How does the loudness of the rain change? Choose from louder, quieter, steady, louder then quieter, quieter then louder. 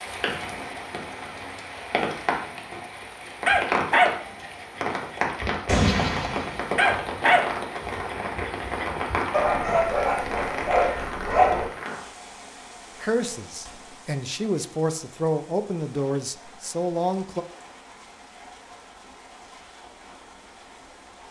quieter.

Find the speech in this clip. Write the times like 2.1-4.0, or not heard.
13.0-17.4.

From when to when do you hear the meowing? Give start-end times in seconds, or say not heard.
not heard.